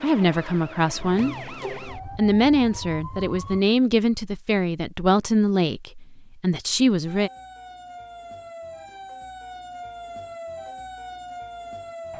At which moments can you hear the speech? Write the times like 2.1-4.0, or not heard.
0.0-7.3.